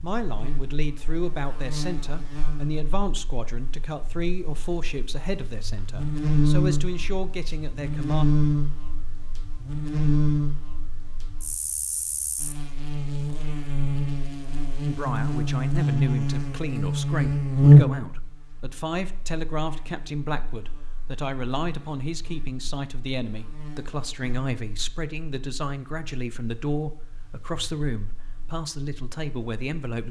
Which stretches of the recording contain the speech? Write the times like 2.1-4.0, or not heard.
0.0-8.2, 14.8-30.0.